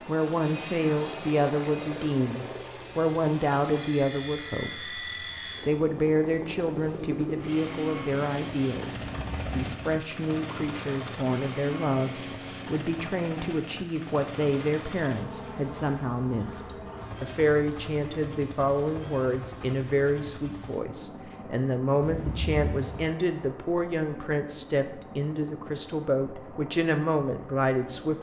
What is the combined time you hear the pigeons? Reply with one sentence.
The pigeons can't be heard in this clip.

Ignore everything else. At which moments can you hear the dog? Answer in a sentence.
The dog can't be heard in this clip.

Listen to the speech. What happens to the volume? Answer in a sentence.
The volume of the speech stays about the same.